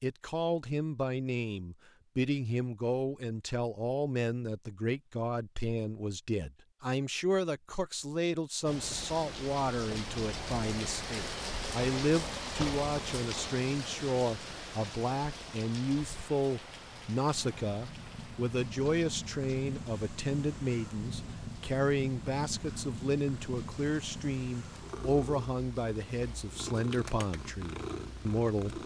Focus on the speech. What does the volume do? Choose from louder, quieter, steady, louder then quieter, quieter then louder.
steady.